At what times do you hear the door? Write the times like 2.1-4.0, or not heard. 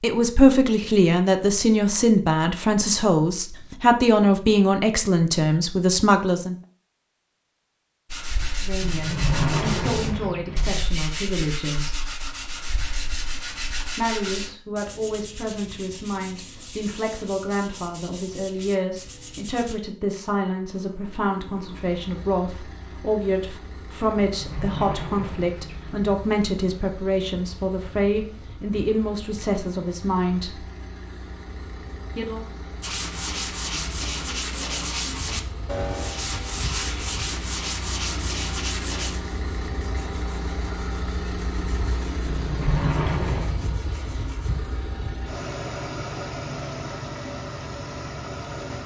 8.8-10.8, 24.2-26.1, 42.2-43.6.